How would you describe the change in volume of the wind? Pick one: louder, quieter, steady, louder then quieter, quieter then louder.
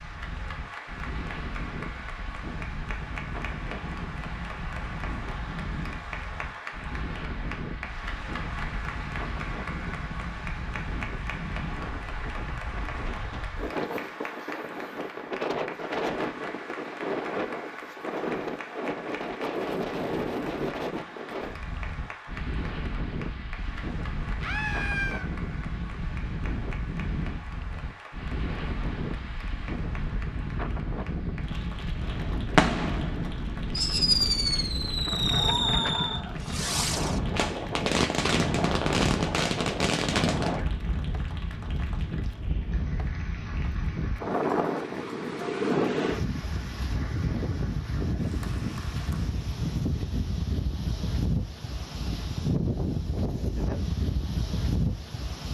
louder.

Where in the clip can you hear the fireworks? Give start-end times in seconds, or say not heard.
32.0-40.6.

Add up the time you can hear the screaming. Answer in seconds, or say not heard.
2 s.